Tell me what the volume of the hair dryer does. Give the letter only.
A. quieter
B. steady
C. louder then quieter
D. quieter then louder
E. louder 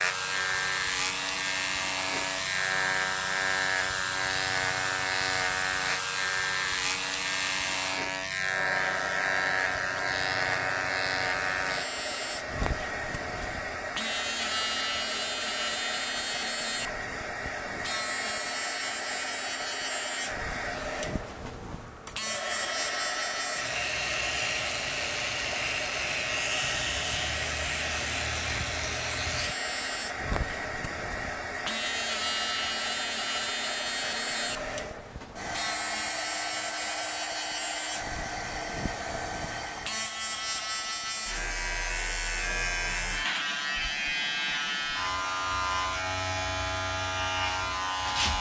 B.